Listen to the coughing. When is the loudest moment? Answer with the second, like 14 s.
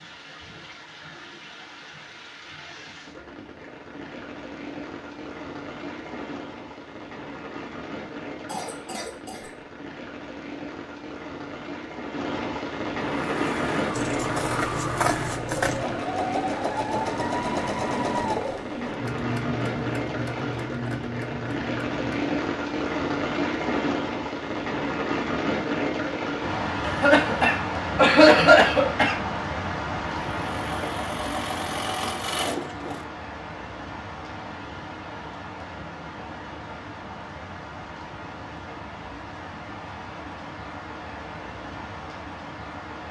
28 s.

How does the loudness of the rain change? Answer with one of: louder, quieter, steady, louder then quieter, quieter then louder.
louder then quieter.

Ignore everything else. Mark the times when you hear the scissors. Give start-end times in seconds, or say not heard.
13.9-15.8.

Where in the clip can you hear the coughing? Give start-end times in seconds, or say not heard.
8.4-9.6, 26.8-29.1.